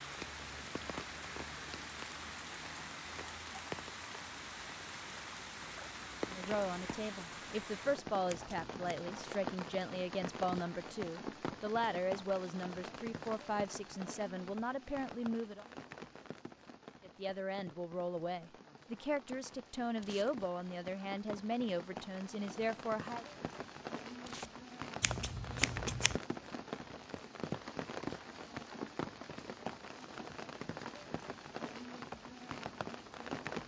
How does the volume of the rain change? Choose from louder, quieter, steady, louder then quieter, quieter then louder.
quieter then louder.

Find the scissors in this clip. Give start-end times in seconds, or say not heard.
8.2-8.8, 25.0-26.2.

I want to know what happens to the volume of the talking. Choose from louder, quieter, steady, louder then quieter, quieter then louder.
steady.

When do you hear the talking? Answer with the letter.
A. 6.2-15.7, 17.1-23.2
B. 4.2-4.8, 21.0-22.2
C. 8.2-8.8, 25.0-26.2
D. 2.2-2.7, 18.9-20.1
A.